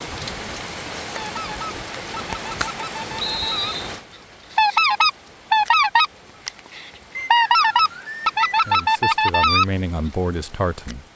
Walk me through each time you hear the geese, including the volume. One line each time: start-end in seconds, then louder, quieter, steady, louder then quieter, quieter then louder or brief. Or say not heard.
1.1-3.8 brief
4.5-9.7 steady.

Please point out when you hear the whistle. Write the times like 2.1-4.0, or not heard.
3.2-3.9, 7.2-8.9.